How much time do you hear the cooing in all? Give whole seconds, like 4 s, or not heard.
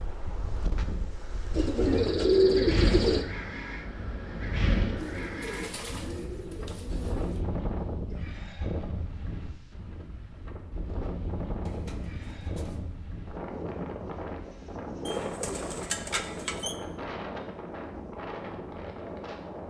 7 s.